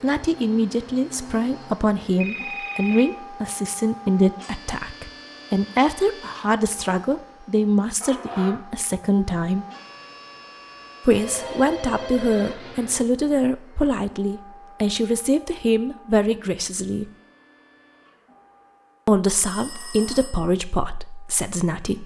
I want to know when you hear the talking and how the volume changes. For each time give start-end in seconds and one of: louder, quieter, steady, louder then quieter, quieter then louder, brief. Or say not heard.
0.0-9.7 steady
11.1-17.1 steady
19.1-22.0 brief.